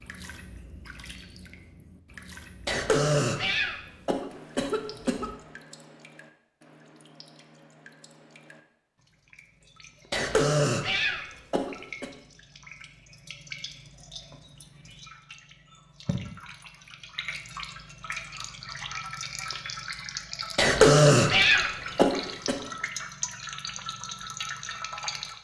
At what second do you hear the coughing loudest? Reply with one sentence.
The loudest moment of the coughing is at 21 seconds.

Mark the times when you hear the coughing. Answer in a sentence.
You can hear the coughing from 2.6 to 5.3 s, from 10.1 to 12.1 s and from 20.6 to 22.6 s.